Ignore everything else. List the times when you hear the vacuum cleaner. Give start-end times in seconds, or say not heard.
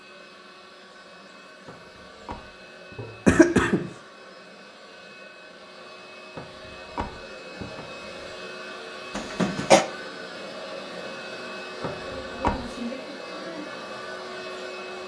0.0-15.0.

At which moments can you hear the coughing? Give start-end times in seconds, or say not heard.
3.0-3.9, 9.2-9.8.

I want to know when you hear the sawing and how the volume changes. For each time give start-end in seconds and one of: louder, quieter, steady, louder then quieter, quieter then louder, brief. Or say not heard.
not heard.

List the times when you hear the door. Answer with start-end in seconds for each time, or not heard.
1.6-3.0, 6.3-8.3, 11.8-12.7.